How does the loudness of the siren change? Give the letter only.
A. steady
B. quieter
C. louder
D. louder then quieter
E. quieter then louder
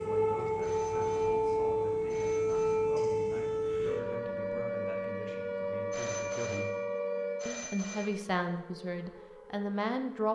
B.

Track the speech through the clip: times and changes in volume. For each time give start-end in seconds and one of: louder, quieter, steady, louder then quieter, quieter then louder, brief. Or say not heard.
0.0-6.7 steady
7.5-10.3 brief.